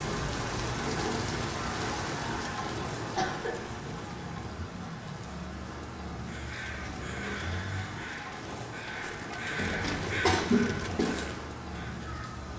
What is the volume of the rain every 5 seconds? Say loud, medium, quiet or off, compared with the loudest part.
loud, medium, medium.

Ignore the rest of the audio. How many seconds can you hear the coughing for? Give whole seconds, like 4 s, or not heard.
2 s.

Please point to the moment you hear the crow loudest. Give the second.
10 s.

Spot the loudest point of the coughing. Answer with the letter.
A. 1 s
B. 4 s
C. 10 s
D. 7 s
C.